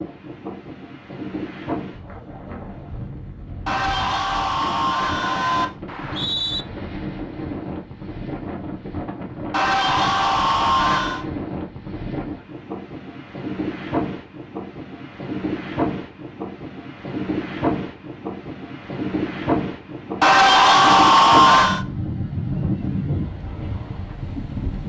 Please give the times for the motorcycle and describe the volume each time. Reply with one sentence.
The motorcycle can't be heard in this clip.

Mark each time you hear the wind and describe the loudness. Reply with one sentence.
You can hear the wind from 0.0 to 24.8 s, getting louder.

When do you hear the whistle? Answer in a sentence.
You can hear the whistle from 5.8 to 6.7 s.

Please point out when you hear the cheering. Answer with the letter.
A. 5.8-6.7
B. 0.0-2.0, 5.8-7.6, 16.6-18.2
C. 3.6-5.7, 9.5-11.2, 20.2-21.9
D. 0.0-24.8
C.